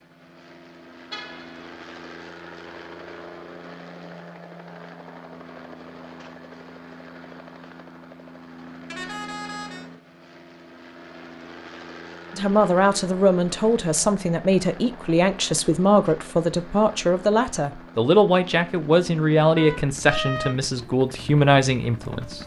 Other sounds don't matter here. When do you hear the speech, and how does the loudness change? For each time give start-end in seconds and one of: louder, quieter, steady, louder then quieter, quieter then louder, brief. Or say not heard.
12.3-22.4 steady.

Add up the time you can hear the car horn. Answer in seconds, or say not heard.
3 s.